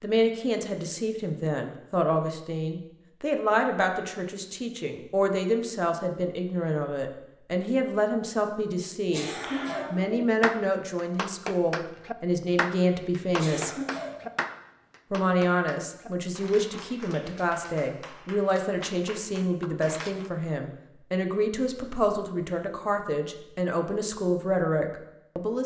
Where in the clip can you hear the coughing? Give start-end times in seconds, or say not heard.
9.1-10.0, 13.3-14.2.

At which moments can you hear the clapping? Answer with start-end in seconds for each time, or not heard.
9.4-20.3.